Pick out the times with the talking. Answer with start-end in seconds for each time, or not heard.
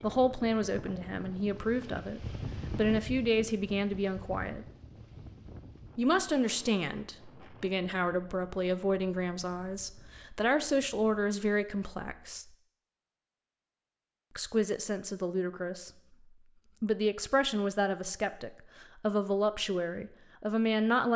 0.0-4.7, 6.0-12.4, 14.3-15.9, 16.8-21.1.